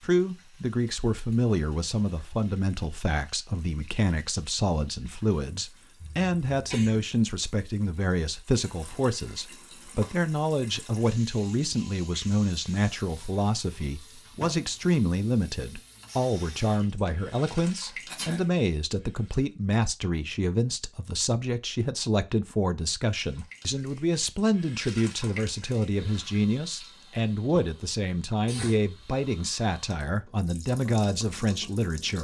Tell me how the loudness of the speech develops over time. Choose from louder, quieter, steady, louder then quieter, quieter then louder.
steady.